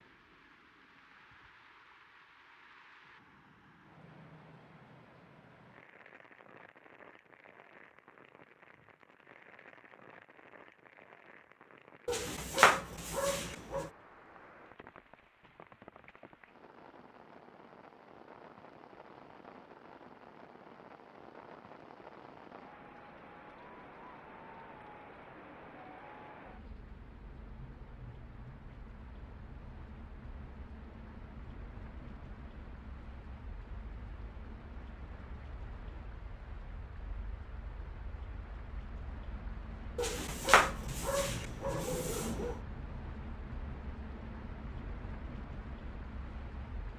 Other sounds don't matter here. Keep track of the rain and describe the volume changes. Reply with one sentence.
The loudness of the rain goes up.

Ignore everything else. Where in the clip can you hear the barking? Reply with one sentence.
You can hear the barking from 12.1 to 13.9 s and from 40.0 to 42.5 s.